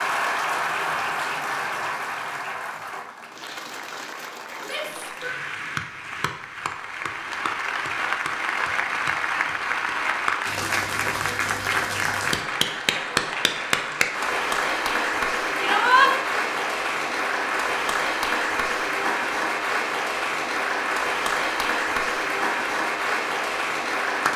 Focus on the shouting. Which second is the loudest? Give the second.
16 s.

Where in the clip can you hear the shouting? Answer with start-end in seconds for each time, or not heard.
4.6-5.3, 15.6-16.1.